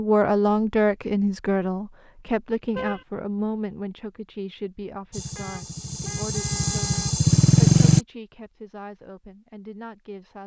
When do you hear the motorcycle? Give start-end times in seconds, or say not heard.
5.1-8.0.